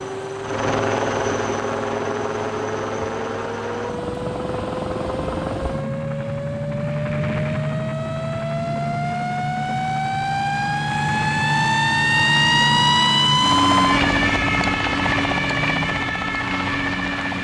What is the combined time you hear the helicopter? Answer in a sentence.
You can hear the helicopter for 17 seconds altogether.